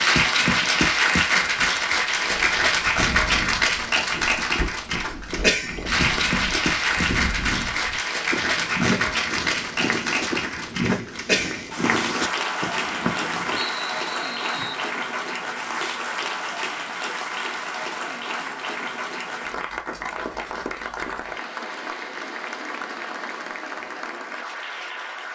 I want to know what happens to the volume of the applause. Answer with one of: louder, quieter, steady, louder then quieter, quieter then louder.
quieter.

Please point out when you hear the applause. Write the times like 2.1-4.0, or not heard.
0.0-25.3.